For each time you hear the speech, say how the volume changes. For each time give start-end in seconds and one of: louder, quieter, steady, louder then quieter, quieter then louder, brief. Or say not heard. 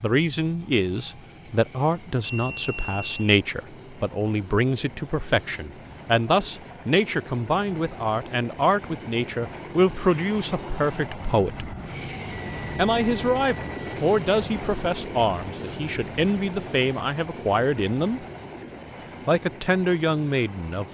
0.0-11.7 steady
12.8-18.2 steady
19.2-20.9 brief.